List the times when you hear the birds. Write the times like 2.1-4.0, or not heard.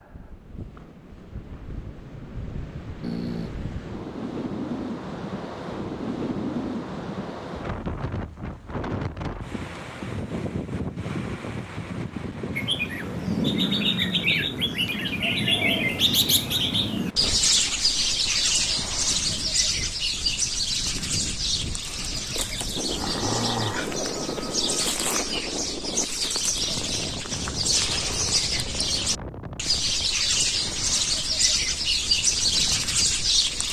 12.6-33.6.